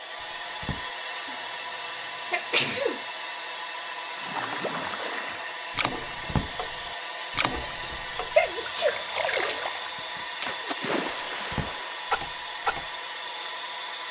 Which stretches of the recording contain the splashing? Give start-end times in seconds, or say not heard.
4.2-12.8.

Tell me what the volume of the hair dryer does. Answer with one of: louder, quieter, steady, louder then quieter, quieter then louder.
steady.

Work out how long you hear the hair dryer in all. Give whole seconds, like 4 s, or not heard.
14 s.